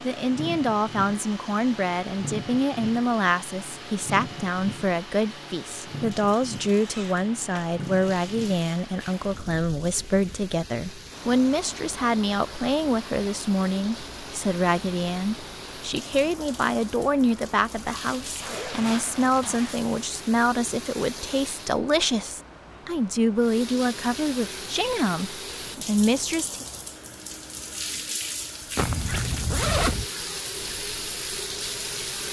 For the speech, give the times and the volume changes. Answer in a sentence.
The speech can be heard from 0.0 to 26.6 s, at a steady volume.